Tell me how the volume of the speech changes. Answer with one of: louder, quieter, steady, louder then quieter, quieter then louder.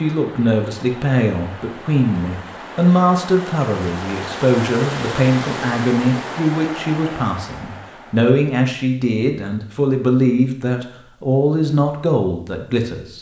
steady.